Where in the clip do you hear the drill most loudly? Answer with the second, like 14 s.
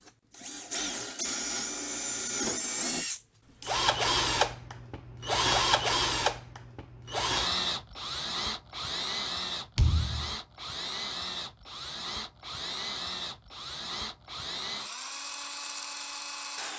6 s.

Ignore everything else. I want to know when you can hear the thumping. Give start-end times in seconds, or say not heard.
9.8-10.3.